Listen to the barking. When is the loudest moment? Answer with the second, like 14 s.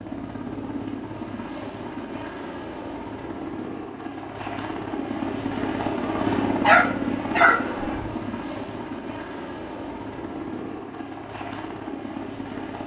7 s.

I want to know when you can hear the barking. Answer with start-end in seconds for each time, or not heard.
6.6-8.1.